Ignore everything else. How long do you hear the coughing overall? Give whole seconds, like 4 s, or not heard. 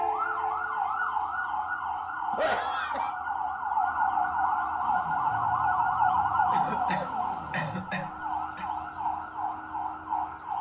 3 s.